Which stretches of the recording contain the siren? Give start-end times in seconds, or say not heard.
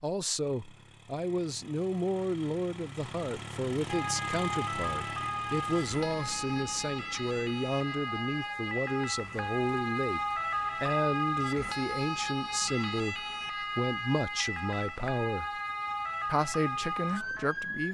3.9-17.8.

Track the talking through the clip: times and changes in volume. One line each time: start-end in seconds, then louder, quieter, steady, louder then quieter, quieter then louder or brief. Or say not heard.
0.0-15.5 steady
16.2-17.8 brief.